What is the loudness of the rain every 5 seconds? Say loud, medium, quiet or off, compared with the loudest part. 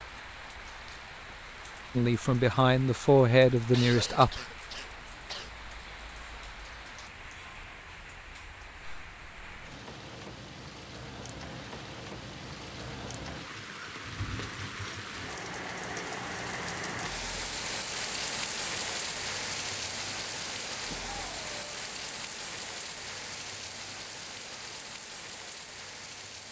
medium, medium, medium, loud, loud, medium.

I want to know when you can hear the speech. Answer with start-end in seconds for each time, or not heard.
1.9-4.4.